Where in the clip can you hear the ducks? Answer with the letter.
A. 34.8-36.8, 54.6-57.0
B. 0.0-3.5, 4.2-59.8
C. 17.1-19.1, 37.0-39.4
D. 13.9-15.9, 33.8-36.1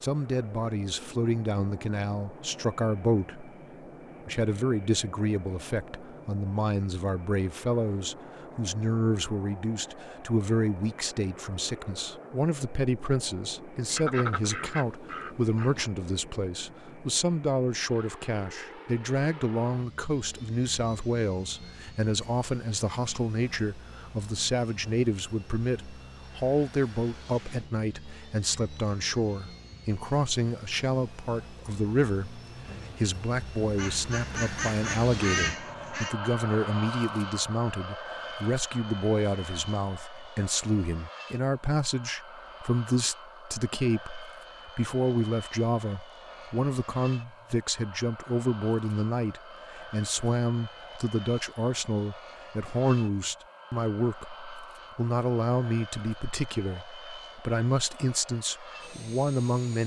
D.